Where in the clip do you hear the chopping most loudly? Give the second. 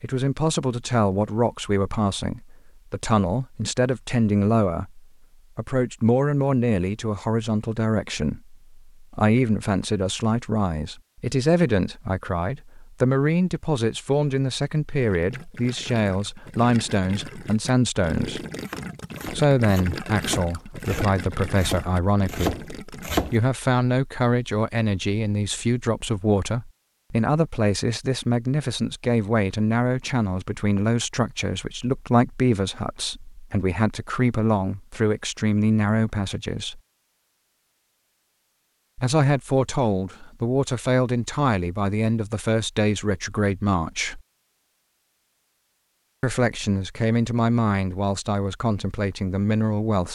23 s.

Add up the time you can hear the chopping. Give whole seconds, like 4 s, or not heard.
5 s.